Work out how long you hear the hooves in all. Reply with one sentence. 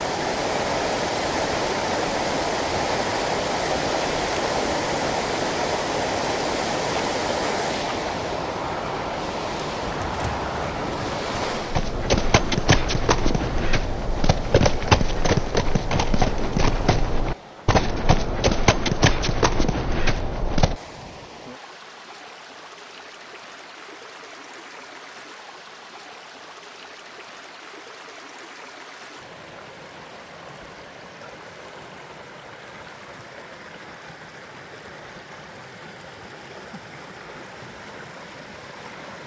You can hear the hooves for 11 seconds altogether.